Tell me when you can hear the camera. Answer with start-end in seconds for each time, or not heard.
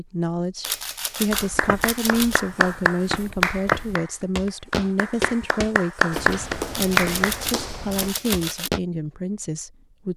0.6-2.4, 6.7-8.7.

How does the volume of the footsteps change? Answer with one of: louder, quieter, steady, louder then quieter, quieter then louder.
louder then quieter.